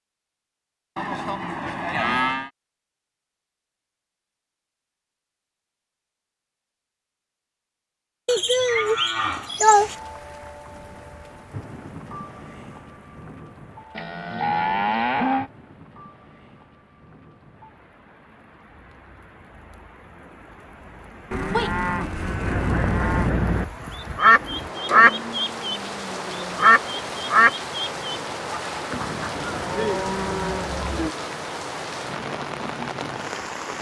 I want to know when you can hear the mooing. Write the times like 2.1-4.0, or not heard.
0.9-2.5, 8.2-9.9, 13.9-15.5, 21.3-23.3, 29.4-31.1.